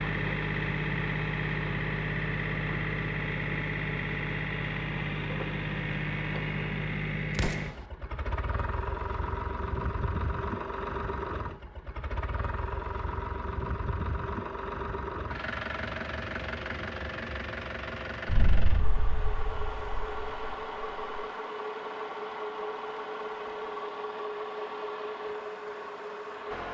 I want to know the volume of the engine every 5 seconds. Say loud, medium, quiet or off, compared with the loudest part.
loud, loud, medium, medium, medium, medium.